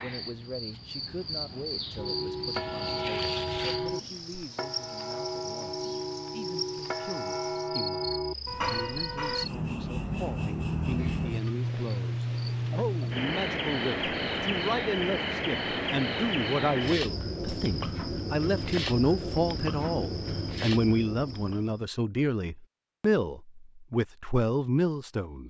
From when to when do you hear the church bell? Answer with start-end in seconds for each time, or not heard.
1.9-9.4.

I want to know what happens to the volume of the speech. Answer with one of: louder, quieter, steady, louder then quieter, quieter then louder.
louder.